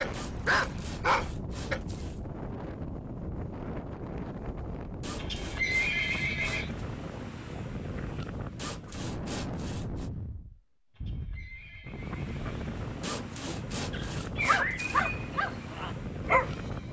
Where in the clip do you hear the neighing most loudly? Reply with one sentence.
The volume of the neighing peaks at 6 seconds.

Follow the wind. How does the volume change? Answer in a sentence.
The volume of the wind stays about the same.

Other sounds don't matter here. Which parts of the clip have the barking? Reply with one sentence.
The barking can be heard from 0.0 to 1.8 s and from 13.9 to 16.8 s.